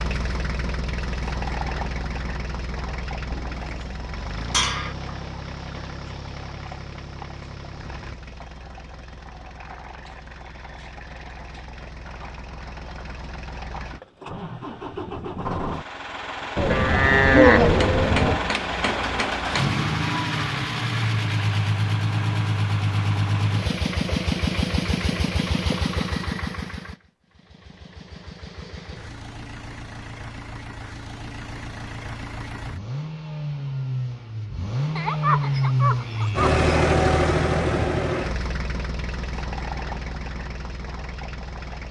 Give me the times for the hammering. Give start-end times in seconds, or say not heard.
17.7-19.9.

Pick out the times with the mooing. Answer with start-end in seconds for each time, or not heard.
3.3-5.0, 16.6-18.4, 35.0-37.0.